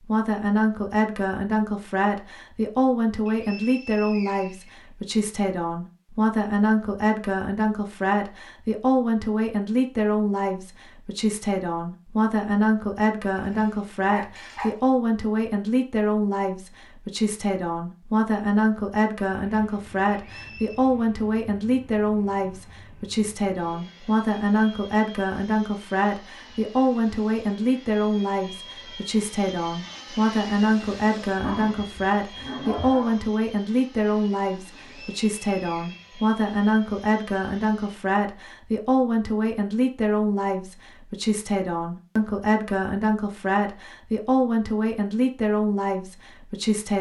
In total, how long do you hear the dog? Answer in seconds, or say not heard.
3 s.